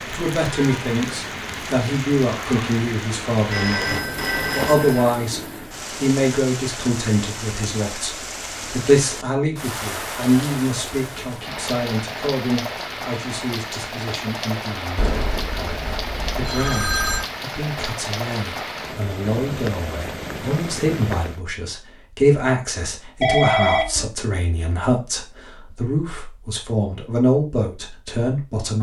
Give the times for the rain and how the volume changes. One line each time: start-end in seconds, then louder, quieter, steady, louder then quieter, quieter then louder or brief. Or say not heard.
0.0-21.4 steady.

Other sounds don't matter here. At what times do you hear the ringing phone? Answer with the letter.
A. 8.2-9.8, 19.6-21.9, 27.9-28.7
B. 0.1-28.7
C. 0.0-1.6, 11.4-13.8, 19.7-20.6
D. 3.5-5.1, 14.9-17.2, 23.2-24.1
D.